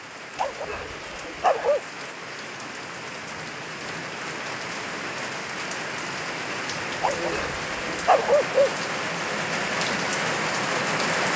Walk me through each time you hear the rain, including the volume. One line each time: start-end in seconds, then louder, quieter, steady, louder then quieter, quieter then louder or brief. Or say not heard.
0.0-11.3 louder.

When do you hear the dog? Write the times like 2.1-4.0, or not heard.
0.3-1.8, 7.0-8.7.